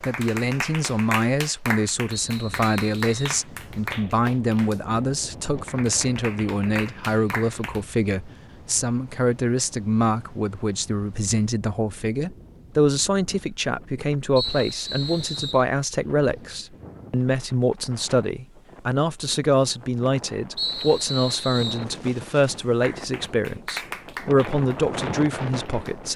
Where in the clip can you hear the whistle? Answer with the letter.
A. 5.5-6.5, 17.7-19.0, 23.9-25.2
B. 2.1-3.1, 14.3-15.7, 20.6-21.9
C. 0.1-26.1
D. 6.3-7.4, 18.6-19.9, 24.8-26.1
B.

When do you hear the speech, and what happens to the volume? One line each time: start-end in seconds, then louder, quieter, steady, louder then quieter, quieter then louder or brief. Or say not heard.
0.1-26.1 steady.